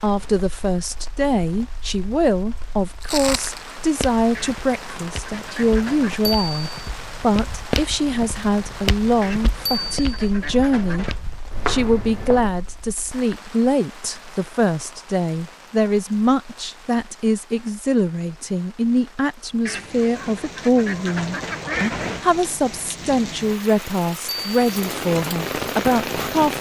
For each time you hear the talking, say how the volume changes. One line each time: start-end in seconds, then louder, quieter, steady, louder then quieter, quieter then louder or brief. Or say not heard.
0.0-11.1 steady
11.7-26.5 steady.